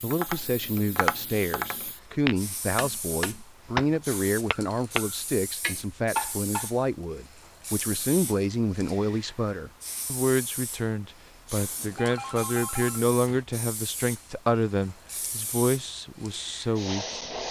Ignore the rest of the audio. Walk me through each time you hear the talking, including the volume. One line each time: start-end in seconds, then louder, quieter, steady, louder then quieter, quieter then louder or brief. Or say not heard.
0.0-17.2 steady.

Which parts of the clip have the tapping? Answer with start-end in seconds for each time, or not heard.
0.1-6.7.